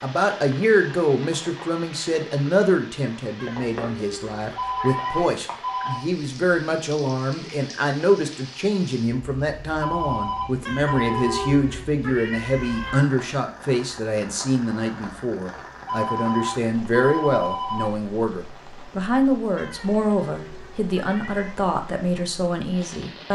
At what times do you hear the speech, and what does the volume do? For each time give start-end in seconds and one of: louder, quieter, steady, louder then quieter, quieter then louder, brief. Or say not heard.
0.0-23.3 steady.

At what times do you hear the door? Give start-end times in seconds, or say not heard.
not heard.